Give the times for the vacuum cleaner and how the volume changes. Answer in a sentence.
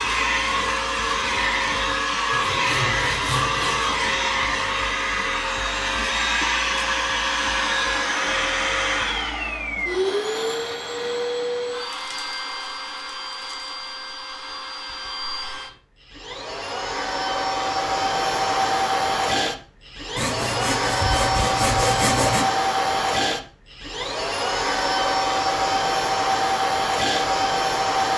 You can hear the vacuum cleaner from 0.0 to 28.1 s, getting quieter then louder.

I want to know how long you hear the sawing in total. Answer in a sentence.
You can hear the sawing for 4 seconds altogether.